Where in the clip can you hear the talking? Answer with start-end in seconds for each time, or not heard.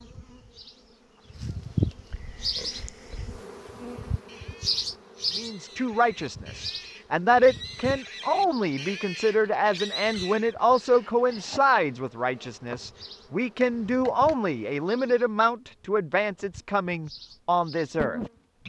5.3-18.6.